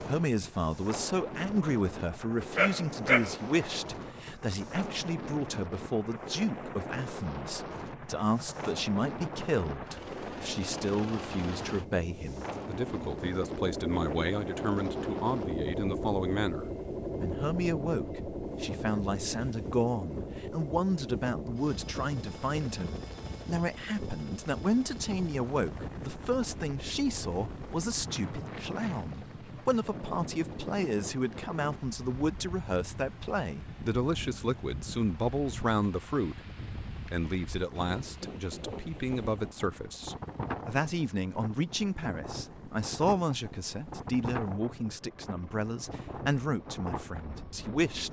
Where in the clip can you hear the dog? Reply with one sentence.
You can hear the dog from 2.5 to 3.6 s.